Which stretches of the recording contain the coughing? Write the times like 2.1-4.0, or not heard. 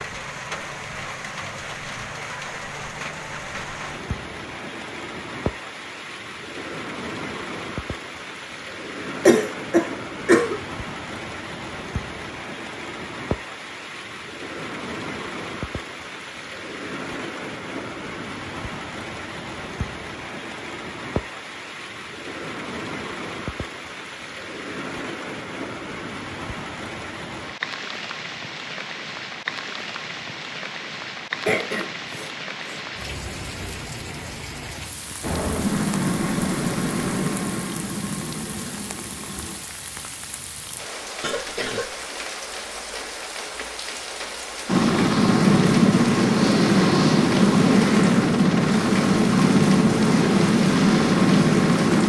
9.2-10.6, 31.4-32.8, 41.2-42.0.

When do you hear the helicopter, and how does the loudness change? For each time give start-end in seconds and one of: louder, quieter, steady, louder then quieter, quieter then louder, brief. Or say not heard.
35.2-39.6 quieter
44.6-52.0 steady.